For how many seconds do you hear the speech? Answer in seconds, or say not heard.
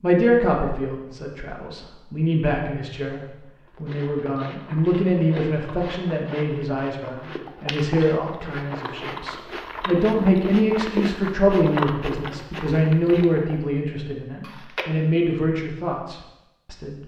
17 s.